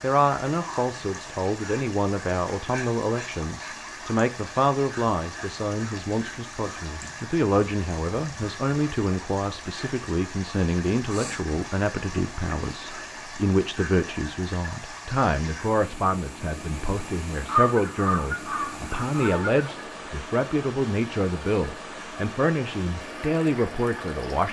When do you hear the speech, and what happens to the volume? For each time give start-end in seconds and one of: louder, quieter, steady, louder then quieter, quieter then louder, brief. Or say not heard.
0.0-24.4 steady.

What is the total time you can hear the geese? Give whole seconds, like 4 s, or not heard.
2 s.